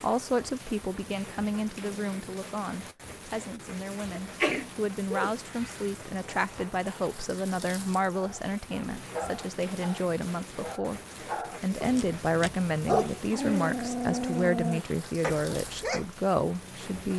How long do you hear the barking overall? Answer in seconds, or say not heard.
8 s.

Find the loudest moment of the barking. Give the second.
13 s.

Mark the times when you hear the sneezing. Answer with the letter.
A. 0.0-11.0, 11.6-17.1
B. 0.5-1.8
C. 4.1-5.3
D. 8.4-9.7
C.